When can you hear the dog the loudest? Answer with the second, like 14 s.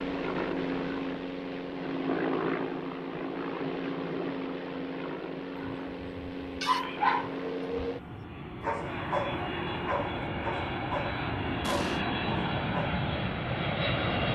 7 s.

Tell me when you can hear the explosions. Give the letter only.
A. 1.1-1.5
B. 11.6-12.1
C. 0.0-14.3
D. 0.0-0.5
B.